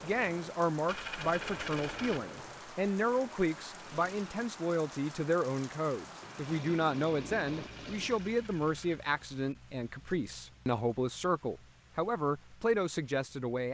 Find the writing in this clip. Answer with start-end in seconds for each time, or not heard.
not heard.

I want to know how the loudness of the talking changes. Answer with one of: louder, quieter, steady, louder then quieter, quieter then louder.
steady.